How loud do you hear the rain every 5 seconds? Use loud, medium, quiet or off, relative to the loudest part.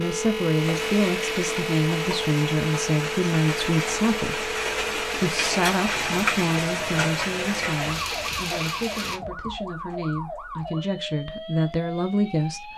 loud, loud, off.